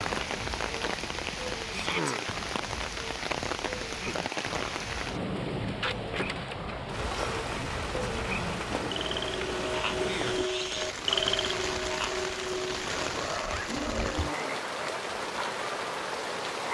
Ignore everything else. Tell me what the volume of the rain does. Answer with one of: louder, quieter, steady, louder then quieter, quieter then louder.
steady.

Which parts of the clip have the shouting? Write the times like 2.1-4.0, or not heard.
1.7-2.1.